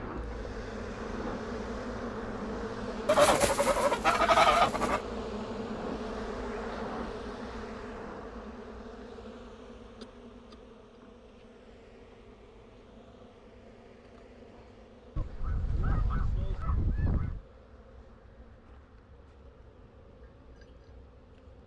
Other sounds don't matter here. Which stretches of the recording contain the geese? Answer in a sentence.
The geese can be heard from 3.0 to 5.0 s and from 15.2 to 17.4 s.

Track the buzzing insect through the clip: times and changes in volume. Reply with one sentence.
The buzzing insect can be heard from 0.0 to 21.6 s, getting quieter.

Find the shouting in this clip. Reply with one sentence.
You can't hear the shouting here.